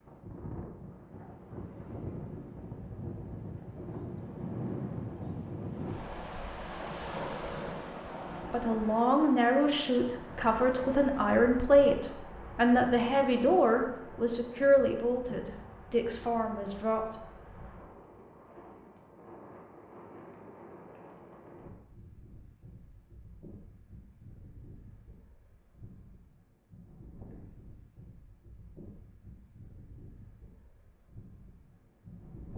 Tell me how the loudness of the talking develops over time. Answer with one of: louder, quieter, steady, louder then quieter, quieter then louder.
quieter.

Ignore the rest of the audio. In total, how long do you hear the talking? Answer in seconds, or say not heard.
9 s.